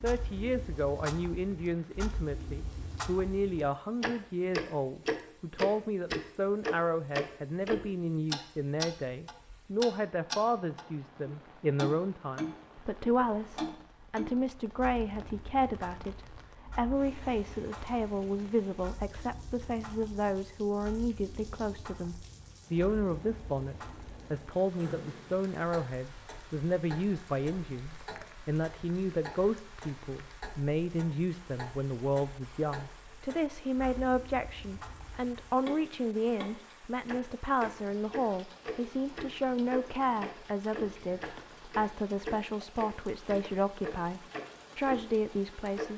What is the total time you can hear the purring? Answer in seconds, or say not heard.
not heard.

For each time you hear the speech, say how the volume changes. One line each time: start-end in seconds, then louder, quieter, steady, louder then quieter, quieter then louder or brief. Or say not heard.
0.0-45.9 steady.